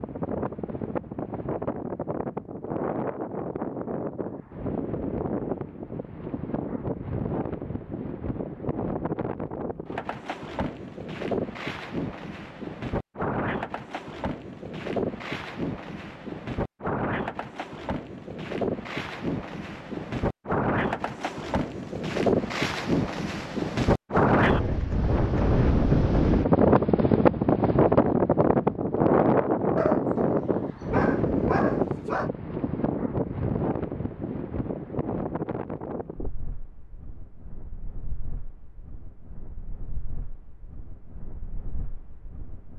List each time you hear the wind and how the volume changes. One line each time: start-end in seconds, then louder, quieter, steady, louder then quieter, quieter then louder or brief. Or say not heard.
0.0-42.7 louder then quieter.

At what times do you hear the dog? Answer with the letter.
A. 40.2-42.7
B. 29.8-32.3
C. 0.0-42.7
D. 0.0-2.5
B.